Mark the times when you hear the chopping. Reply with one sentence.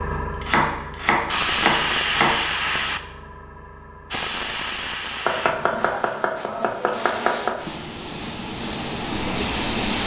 You can hear the chopping from 0.1 to 2.4 s and from 5.2 to 7.5 s.